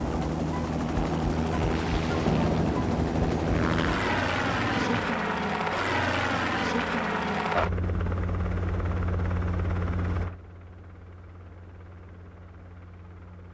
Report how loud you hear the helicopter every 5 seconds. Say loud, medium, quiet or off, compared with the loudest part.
loud, loud, quiet.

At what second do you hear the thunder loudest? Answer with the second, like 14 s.
2 s.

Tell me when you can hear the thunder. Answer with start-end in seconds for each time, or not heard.
1.8-5.2.